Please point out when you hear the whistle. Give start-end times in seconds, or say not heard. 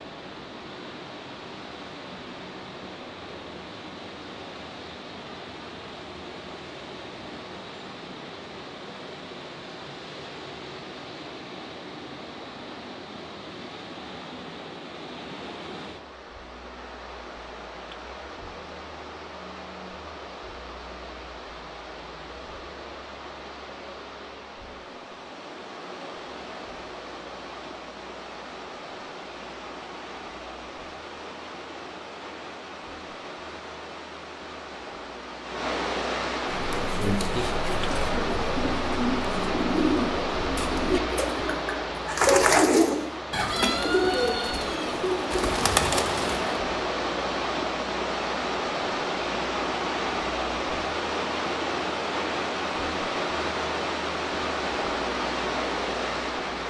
not heard.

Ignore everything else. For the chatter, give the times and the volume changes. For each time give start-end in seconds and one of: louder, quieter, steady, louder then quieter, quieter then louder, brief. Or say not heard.
not heard.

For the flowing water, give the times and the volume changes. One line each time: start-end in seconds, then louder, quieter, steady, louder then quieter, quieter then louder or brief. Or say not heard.
0.0-56.6 louder.